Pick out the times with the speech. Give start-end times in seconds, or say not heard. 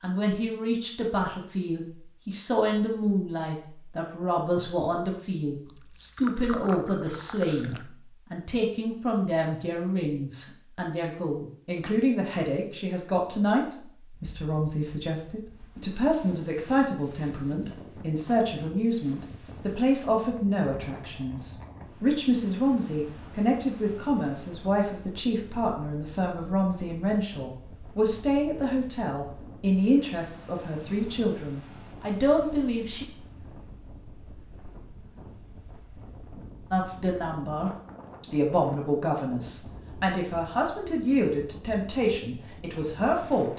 0.0-33.0, 36.7-43.5.